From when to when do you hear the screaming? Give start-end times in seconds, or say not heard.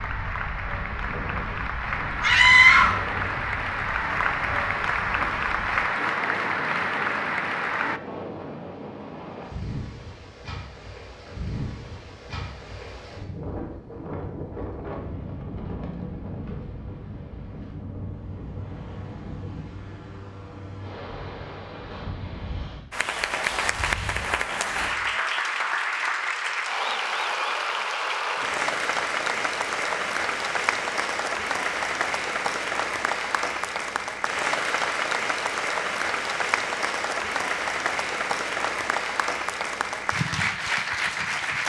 2.2-3.0.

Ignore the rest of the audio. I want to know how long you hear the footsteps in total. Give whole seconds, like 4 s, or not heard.
not heard.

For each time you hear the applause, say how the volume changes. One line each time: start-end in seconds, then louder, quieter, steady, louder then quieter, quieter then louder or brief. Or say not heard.
0.0-8.0 louder
22.9-41.6 steady.